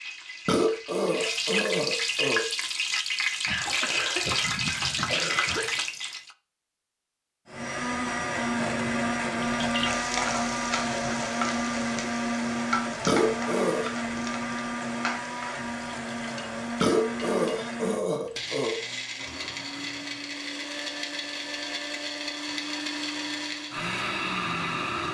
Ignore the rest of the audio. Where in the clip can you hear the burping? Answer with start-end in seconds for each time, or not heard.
0.5-2.5, 13.1-13.9, 16.8-18.8.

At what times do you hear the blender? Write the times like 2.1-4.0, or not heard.
7.5-25.0.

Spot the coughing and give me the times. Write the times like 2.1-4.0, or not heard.
3.5-5.8, 19.1-20.4.